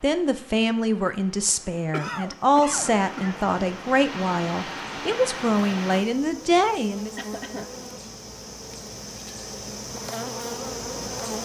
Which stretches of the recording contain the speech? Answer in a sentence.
You can hear the speech from 0.0 to 7.2 s.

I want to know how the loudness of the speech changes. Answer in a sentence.
The volume of the speech stays about the same.